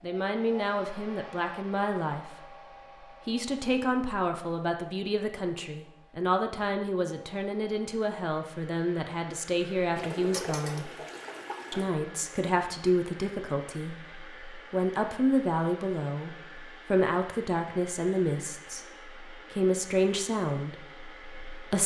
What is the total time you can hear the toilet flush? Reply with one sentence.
You can hear the toilet flush for 2 seconds altogether.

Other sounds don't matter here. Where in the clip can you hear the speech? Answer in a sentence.
You can hear the speech from 0.0 to 2.5 s, from 3.2 to 10.9 s and from 11.7 to 21.8 s.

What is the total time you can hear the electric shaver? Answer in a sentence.
The electric shaver can't be heard in this clip.